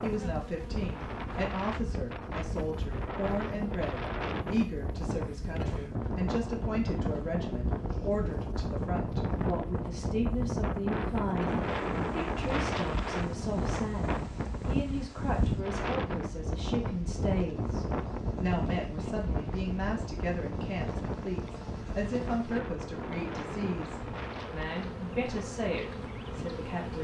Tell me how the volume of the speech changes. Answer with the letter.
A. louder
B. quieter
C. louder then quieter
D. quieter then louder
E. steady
E.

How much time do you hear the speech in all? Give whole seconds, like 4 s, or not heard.
27 s.